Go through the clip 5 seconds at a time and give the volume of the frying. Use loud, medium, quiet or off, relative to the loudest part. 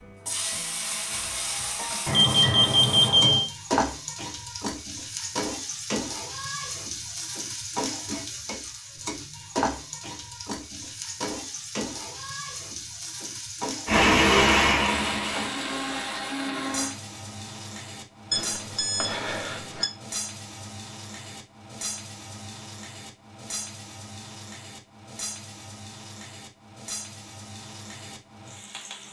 loud, loud, loud, medium, medium, medium.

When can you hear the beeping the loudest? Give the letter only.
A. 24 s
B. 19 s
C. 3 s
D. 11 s
C.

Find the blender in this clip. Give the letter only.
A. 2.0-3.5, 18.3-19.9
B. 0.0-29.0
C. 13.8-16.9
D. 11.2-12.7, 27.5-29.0
C.